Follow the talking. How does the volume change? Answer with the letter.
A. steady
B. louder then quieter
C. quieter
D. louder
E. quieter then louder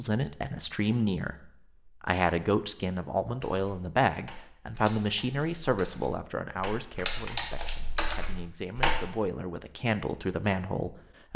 E.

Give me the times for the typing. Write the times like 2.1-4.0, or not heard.
3.4-8.9.